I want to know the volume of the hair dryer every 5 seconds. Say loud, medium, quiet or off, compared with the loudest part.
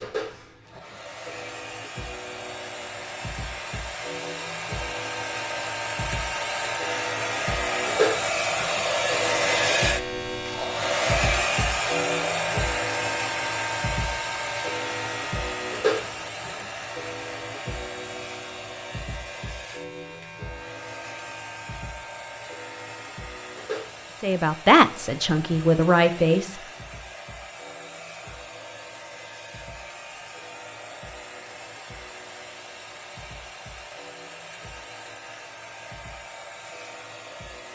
medium, loud, loud, medium, quiet, quiet, quiet, quiet.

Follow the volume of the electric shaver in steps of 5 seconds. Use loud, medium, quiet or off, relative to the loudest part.
medium, loud, loud, loud, medium, quiet, quiet, quiet.